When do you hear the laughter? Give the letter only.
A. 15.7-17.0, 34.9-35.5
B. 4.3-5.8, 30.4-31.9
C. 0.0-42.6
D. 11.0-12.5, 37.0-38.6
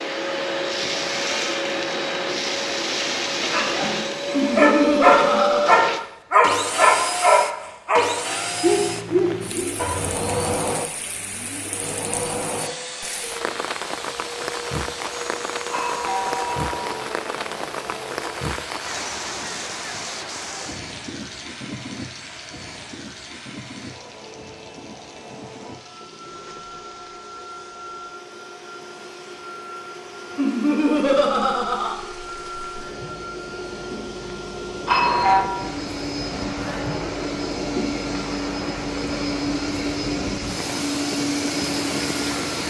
B.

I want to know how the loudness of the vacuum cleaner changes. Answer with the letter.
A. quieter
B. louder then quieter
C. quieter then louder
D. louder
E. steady
C.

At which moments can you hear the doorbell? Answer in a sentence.
The doorbell can be heard from 15.7 to 17.0 s and from 34.9 to 35.5 s.